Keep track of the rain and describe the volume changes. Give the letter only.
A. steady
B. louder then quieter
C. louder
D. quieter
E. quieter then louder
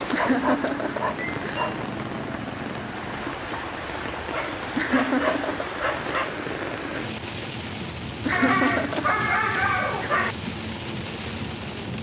A.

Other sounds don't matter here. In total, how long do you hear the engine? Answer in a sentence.
You can hear the engine for 3 seconds altogether.